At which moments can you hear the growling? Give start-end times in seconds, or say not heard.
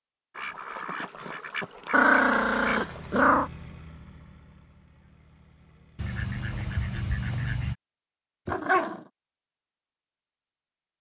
1.9-3.5, 8.4-9.1.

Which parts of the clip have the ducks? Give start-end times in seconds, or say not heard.
0.3-3.1, 6.0-7.8.